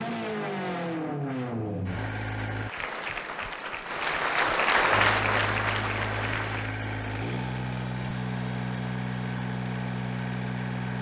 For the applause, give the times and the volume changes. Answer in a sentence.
The applause can be heard from 2.6 to 6.8 s, getting louder then quieter.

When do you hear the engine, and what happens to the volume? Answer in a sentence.
You can hear the engine briefly from 0.0 to 2.7 s; and from 4.9 to 10.9 s, at a steady volume.